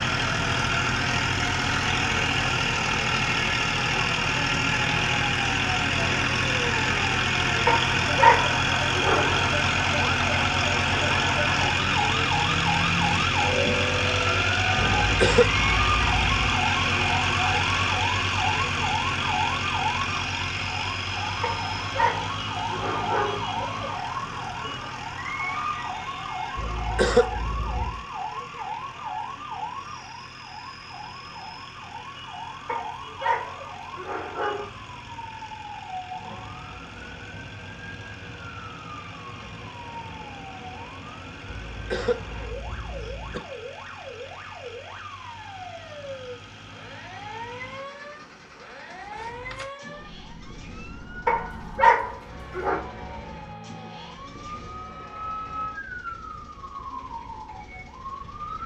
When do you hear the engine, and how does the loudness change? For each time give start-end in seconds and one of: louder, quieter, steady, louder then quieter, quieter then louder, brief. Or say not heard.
0.0-58.6 quieter.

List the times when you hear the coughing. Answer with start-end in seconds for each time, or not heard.
15.0-16.5, 26.6-28.1, 41.5-43.4.